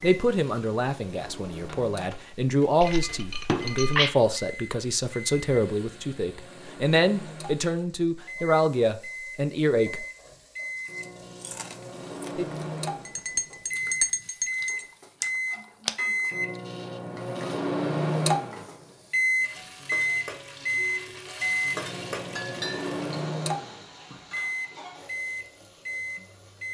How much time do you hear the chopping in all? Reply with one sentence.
The chopping can't be heard in this clip.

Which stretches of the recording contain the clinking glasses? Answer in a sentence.
The clinking glasses can be heard from 2.8 to 4.1 s, from 13.1 to 14.8 s and from 22.4 to 22.9 s.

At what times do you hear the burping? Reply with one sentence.
The burping can't be heard in this clip.